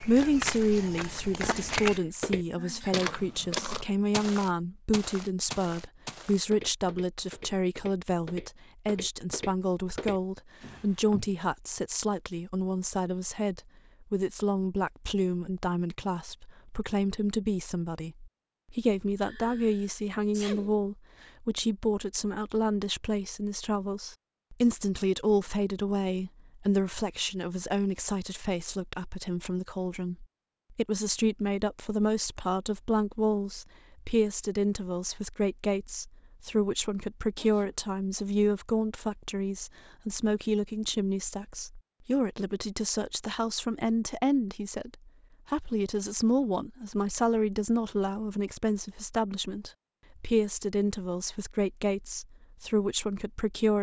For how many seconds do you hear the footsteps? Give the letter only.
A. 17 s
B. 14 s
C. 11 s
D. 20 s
C.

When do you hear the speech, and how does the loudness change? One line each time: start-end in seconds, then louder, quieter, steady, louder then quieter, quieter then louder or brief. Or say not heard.
0.0-53.7 steady.